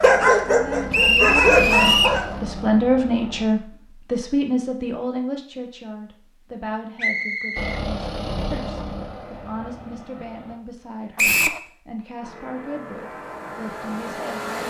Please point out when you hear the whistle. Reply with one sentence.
The whistle can be heard from 0.9 to 2.2 s, from 7.0 to 7.8 s and from 11.2 to 11.6 s.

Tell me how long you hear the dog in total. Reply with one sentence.
You can hear the dog for 2 seconds altogether.